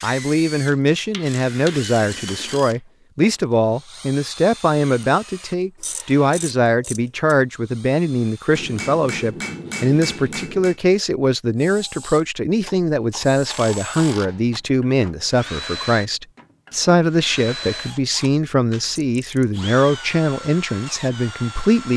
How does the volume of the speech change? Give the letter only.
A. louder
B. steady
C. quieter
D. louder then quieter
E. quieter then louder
B.